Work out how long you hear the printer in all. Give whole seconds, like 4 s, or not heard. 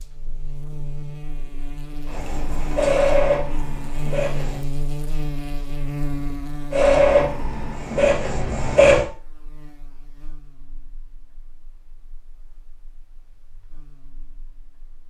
5 s.